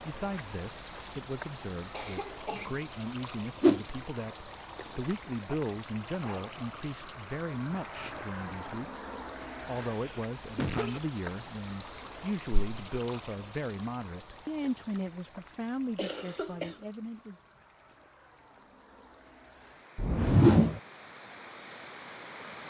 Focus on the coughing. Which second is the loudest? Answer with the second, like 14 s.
11 s.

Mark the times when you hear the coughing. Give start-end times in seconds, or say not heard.
1.9-2.7, 9.9-11.0, 15.9-16.9.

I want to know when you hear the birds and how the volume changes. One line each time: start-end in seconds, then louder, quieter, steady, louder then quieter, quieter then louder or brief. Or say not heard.
not heard.